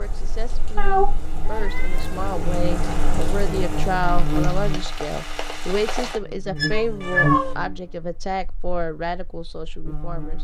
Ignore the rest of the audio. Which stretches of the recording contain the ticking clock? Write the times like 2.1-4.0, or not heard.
not heard.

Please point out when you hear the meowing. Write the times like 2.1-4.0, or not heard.
0.8-2.4, 6.5-7.5.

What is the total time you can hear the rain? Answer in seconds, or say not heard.
6 s.